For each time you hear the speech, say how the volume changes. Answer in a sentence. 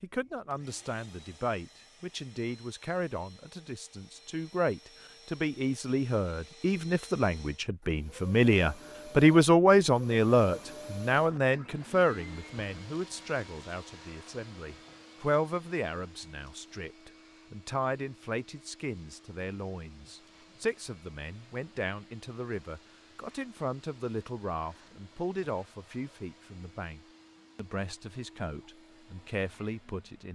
You can hear the speech from 0.0 to 30.3 s, getting louder then quieter.